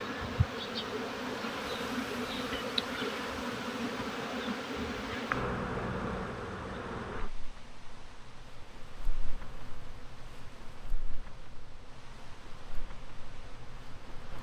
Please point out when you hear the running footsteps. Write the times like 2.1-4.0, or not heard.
not heard.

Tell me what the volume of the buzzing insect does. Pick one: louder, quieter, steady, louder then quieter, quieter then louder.
quieter.